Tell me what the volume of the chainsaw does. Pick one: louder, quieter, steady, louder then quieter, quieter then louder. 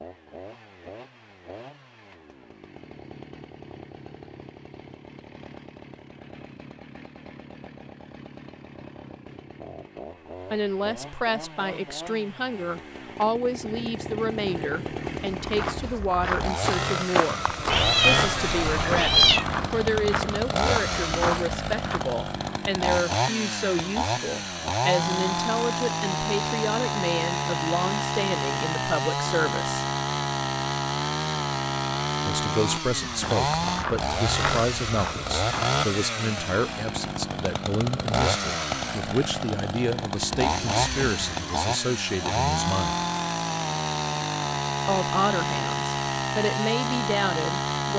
louder.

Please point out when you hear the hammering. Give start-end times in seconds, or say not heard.
not heard.